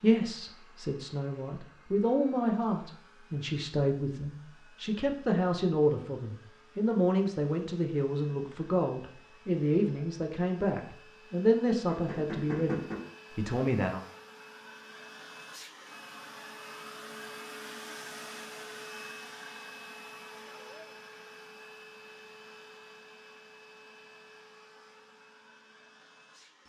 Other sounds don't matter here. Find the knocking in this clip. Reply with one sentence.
You can hear the knocking from 11.9 to 13.1 s.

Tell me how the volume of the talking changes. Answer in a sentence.
The loudness of the talking stays about the same.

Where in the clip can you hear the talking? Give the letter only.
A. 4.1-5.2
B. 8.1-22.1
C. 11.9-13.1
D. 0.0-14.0
D.